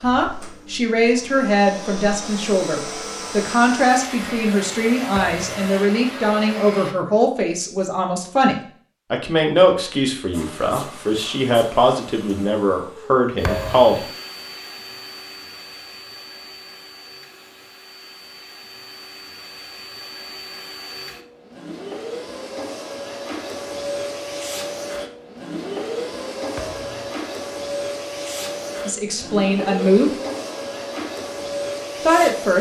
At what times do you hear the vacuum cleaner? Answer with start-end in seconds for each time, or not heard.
0.0-7.0, 10.3-32.5.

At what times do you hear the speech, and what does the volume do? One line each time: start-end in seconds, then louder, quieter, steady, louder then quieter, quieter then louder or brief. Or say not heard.
0.0-14.0 steady
28.9-30.1 brief
32.0-32.5 brief.